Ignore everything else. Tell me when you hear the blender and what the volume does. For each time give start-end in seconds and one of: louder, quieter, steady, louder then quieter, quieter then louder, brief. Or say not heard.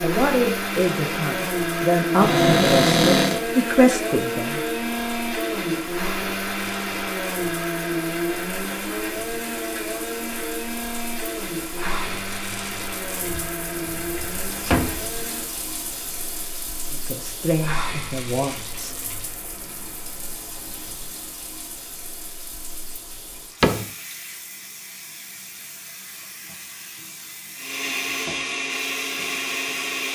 0.0-15.6 quieter
27.6-30.1 brief.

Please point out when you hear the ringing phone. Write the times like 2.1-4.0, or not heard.
not heard.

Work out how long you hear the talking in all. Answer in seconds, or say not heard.
7 s.